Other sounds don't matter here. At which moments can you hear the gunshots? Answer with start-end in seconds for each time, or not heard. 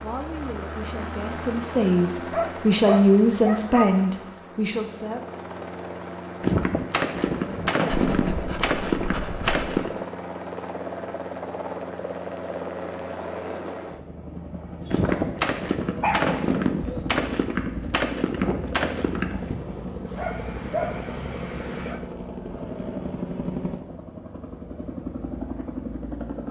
6.4-9.9, 14.9-19.6.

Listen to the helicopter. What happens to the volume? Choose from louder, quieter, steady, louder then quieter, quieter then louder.
steady.